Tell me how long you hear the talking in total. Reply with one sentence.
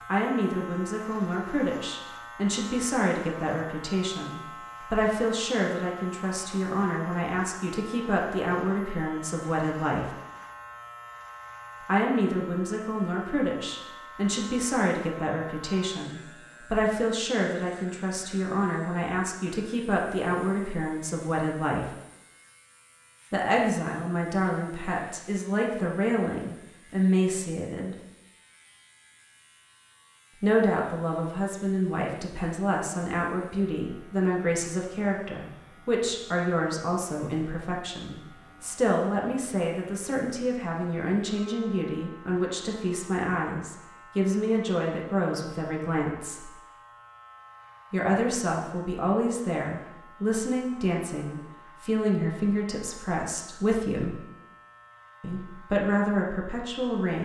You can hear the talking for 49 seconds altogether.